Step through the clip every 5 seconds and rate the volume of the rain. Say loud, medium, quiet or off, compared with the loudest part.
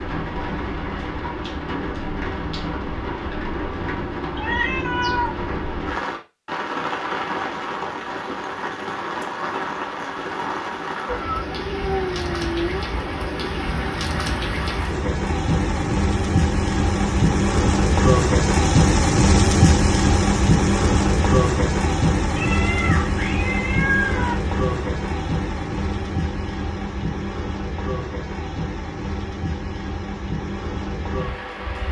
medium, medium, medium, loud, loud, medium, medium.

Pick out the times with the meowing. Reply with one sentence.
You can hear the meowing from 4.3 to 5.3 s, from 11.1 to 12.8 s and from 22.4 to 24.4 s.